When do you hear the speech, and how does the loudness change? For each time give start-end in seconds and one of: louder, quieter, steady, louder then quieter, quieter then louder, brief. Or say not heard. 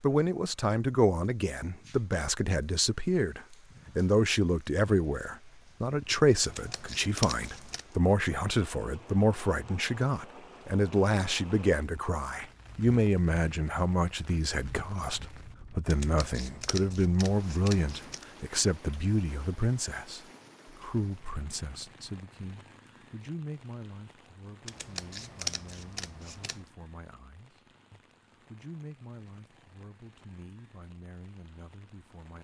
0.0-32.3 quieter.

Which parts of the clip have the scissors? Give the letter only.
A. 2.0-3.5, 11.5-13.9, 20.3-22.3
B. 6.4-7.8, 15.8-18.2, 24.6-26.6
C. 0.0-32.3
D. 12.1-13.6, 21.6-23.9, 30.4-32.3
B.